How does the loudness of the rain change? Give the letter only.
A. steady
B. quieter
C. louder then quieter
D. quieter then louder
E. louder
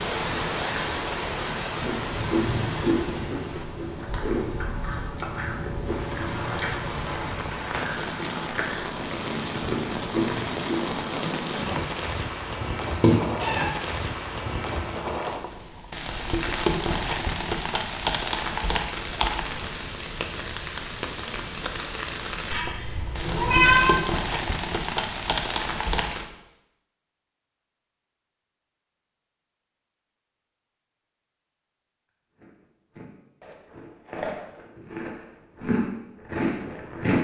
A.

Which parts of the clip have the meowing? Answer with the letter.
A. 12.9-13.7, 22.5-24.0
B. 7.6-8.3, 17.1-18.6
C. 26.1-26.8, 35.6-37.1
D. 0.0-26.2
A.